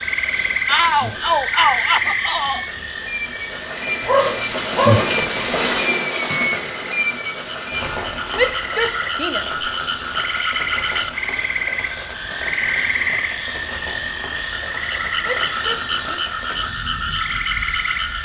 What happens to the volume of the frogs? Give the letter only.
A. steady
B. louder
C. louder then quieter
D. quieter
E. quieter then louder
E.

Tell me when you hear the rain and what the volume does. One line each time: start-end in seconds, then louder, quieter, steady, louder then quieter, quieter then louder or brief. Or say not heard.
0.0-18.2 louder then quieter.